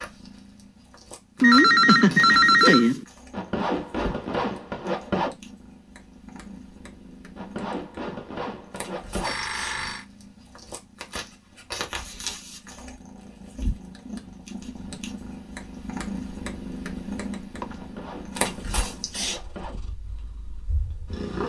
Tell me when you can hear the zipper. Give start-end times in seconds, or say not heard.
3.3-5.3, 7.3-9.3, 17.8-19.8.